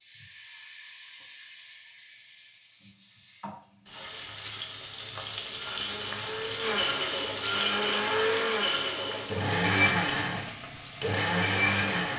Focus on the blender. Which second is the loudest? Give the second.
10 s.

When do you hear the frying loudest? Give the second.
7 s.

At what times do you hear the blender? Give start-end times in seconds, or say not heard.
5.4-12.1.